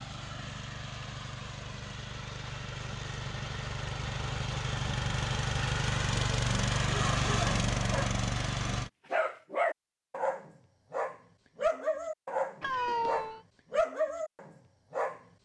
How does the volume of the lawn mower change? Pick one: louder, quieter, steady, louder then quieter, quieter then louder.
louder.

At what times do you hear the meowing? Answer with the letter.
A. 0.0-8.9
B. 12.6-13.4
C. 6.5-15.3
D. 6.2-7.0
B.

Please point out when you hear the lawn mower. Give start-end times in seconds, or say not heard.
0.0-8.9.